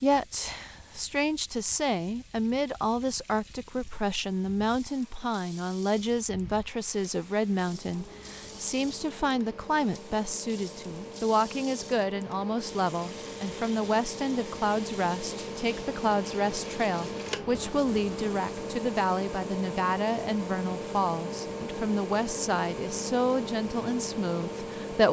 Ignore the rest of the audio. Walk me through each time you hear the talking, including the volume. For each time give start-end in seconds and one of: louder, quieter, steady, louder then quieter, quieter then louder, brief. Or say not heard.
0.0-25.0 steady.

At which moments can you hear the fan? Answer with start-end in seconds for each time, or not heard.
0.0-25.0.